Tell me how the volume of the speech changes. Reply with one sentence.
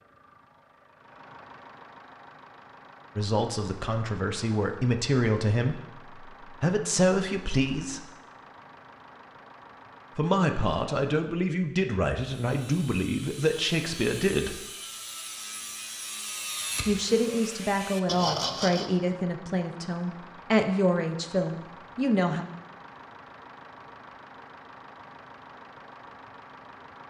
The volume of the speech stays about the same.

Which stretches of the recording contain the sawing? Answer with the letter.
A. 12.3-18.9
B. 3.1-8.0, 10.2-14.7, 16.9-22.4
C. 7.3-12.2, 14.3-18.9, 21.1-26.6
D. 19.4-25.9
A.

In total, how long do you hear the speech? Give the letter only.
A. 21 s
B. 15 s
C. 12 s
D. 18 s
B.